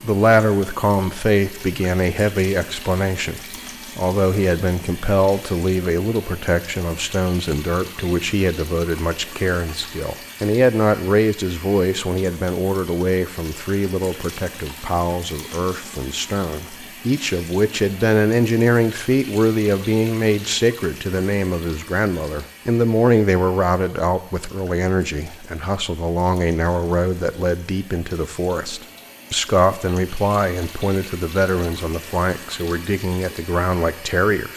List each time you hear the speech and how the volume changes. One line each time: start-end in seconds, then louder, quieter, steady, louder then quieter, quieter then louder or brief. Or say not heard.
0.0-34.5 steady.